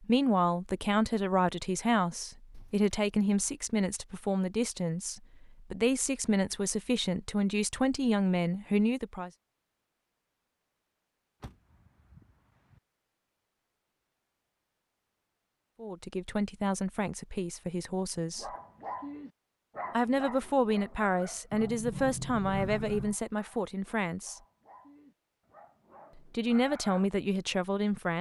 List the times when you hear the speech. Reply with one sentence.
The speech can be heard from 0.0 to 9.3 s, from 15.8 to 18.5 s, from 19.9 to 24.4 s and from 26.1 to 28.1 s.